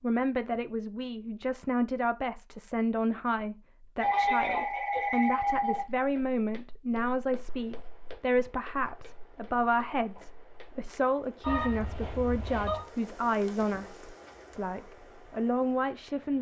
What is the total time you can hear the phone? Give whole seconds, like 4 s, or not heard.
3 s.